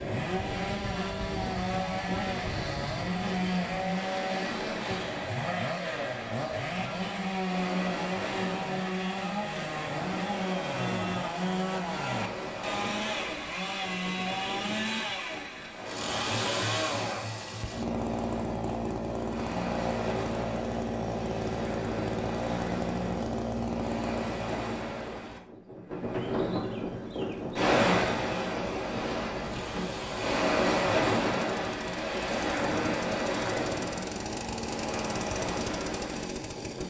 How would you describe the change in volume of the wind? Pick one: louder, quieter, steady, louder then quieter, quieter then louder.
louder.